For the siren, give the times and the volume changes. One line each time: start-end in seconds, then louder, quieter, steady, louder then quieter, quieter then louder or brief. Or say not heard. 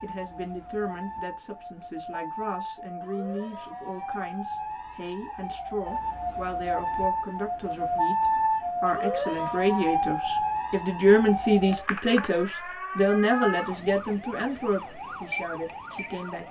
0.0-16.4 louder then quieter.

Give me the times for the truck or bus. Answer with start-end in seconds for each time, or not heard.
not heard.